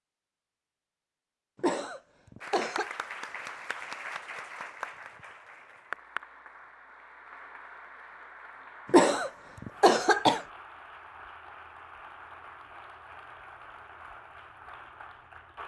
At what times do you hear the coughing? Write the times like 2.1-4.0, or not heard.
1.6-2.9, 8.9-10.4.